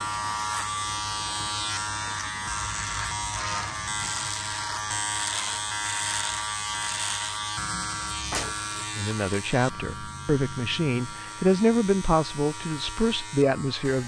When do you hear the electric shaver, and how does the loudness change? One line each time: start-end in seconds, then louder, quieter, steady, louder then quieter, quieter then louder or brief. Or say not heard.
0.0-14.0 quieter.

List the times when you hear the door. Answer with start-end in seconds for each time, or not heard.
8.3-8.8.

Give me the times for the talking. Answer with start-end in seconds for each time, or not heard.
8.9-14.0.